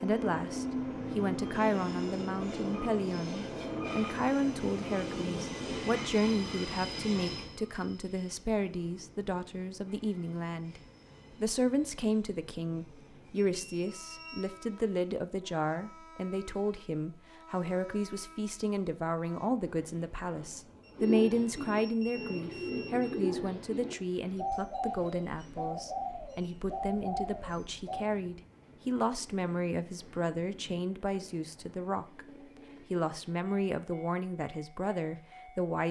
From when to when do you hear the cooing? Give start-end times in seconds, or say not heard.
20.9-28.1.